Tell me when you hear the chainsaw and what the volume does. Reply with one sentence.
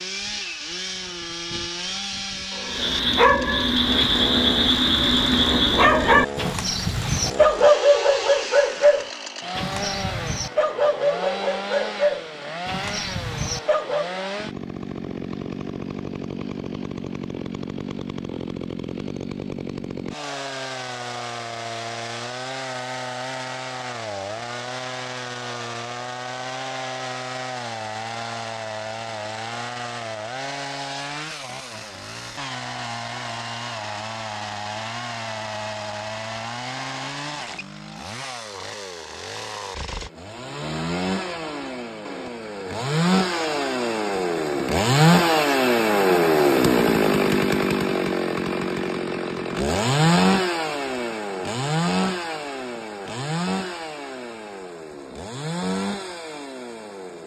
You can hear the chainsaw from 0.0 to 57.2 s, getting louder.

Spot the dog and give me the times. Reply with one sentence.
You can hear the dog from 2.5 to 14.2 s.